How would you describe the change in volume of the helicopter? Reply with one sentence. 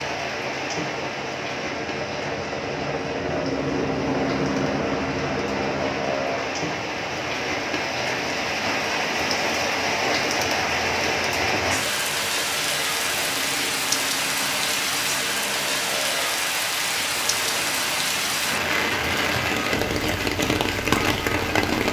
The loudness of the helicopter goes down.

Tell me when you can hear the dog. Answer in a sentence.
The dog can't be heard in this clip.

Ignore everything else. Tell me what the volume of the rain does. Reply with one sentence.
The volume of the rain goes up.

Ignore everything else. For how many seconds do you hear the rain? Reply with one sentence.
The rain can be heard for 22 seconds in total.